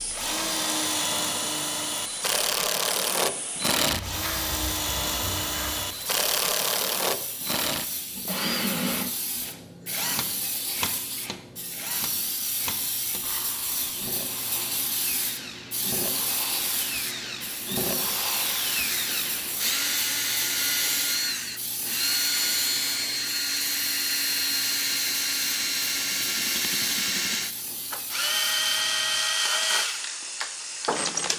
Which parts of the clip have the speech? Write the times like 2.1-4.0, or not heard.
not heard.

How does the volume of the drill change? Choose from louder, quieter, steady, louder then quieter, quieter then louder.
quieter then louder.